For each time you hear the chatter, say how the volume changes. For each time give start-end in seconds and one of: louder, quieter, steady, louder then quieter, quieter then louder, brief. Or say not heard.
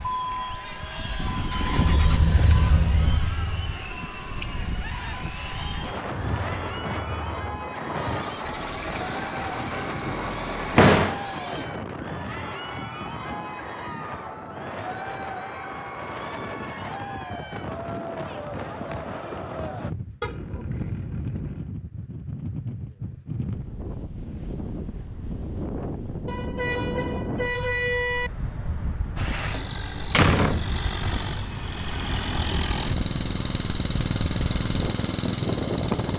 0.0-19.9 steady.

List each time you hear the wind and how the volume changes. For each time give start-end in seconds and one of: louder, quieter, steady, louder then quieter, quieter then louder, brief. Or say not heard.
0.0-36.1 steady.